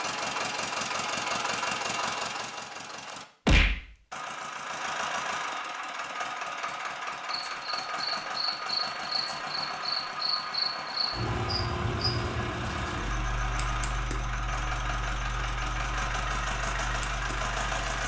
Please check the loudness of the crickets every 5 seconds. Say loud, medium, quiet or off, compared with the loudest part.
off, loud, loud, medium.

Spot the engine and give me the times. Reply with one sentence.
You can hear the engine from 0.0 to 18.0 s.